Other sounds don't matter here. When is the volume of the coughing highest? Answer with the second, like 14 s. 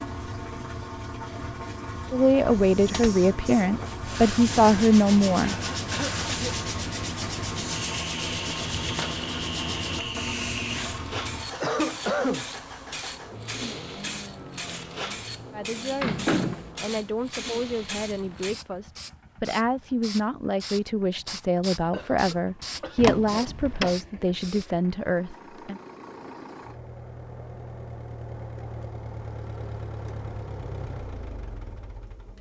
12 s.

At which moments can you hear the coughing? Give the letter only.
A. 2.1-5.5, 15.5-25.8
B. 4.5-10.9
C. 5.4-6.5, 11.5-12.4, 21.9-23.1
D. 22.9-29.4
C.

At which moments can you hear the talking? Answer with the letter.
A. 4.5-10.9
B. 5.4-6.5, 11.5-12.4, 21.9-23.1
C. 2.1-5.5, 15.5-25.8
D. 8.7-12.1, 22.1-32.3
C.